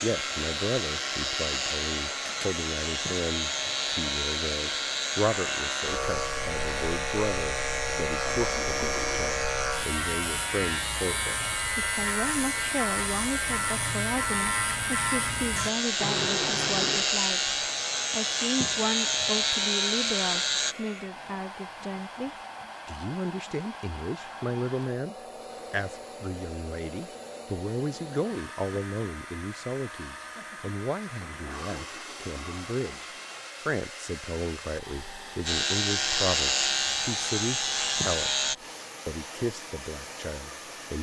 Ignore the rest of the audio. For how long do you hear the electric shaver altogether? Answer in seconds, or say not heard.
24 s.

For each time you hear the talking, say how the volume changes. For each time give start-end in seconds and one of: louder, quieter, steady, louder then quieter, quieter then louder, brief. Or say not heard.
0.0-38.5 steady
39.0-40.9 brief.